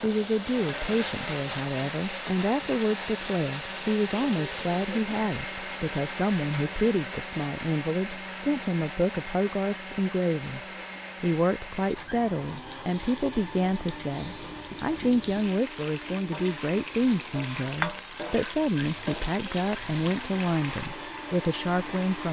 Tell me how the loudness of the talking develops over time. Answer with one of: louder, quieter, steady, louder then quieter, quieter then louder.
steady.